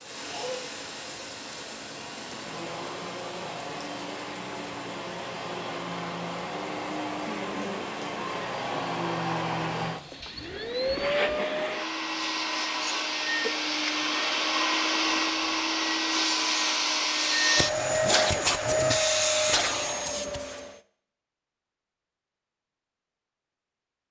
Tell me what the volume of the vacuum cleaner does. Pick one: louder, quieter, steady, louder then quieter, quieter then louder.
louder.